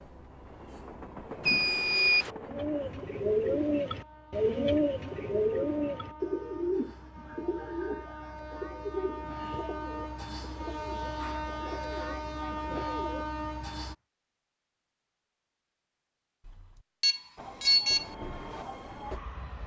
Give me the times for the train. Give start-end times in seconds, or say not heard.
0.0-13.9, 17.4-19.6.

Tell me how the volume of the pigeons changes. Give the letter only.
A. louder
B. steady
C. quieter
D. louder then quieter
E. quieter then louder
C.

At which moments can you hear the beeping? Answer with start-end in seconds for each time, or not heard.
1.4-2.3, 16.4-18.1.